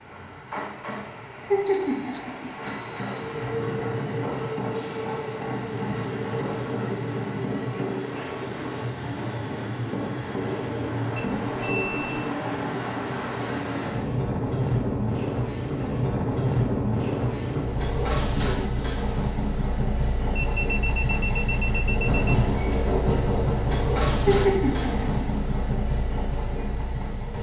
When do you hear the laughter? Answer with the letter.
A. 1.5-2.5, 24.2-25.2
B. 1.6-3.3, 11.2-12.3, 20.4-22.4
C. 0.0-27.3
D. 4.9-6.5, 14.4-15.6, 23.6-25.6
A.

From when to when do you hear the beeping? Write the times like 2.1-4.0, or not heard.
1.6-3.3, 11.2-12.3, 20.4-22.4.